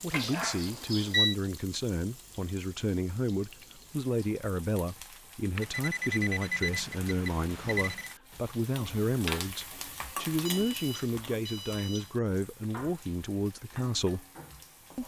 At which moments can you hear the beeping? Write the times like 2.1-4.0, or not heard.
0.1-1.4, 5.5-8.2, 10.4-12.2.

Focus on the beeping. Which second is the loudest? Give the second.
1 s.